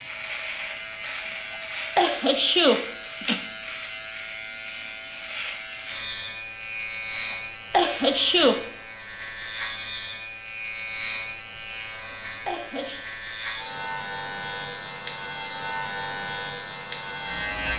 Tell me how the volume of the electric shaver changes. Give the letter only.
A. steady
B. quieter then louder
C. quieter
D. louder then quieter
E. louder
A.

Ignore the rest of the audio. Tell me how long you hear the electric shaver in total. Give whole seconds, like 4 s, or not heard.
18 s.